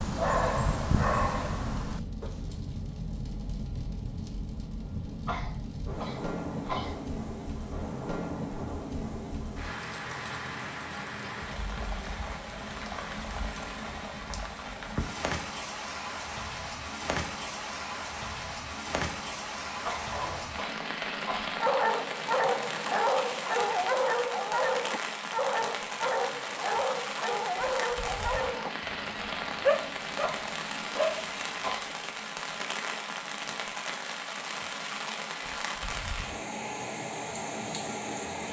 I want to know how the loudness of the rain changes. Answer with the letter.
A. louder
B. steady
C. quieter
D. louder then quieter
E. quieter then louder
B.